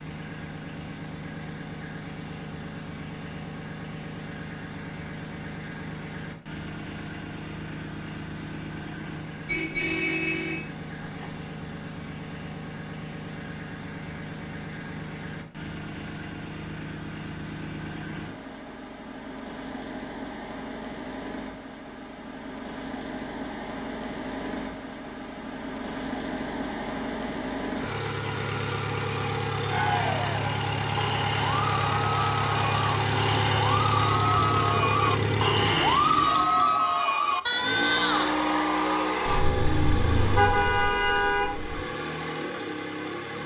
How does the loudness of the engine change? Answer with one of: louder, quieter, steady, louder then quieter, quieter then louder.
louder.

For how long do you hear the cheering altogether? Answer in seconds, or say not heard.
10 s.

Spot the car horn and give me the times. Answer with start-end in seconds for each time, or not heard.
9.4-11.3, 39.2-41.9.